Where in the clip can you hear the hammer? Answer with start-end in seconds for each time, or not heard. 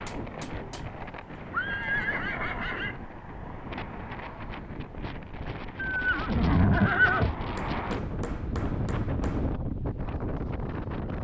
0.1-1.4, 7.5-9.6.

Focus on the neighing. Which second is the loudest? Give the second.
7 s.